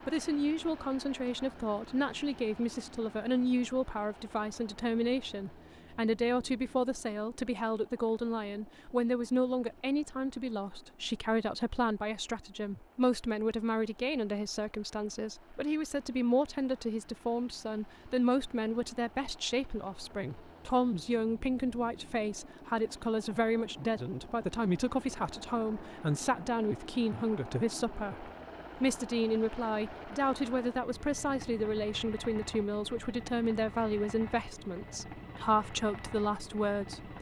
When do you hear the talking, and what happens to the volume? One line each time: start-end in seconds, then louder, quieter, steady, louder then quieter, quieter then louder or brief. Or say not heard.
0.1-37.1 steady.